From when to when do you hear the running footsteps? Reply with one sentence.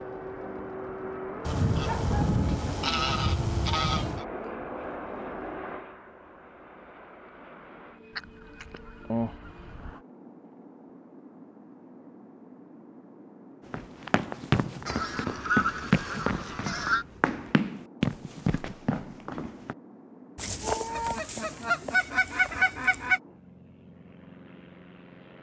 You can hear the running footsteps from 13.7 to 19.8 s.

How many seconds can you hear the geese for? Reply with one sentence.
You can hear the geese for 10 seconds altogether.